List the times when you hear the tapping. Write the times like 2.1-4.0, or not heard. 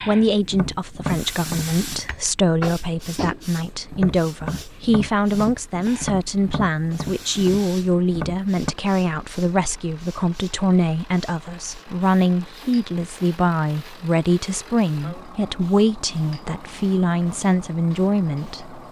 0.5-8.8.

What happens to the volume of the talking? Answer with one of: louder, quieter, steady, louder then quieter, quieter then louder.
steady.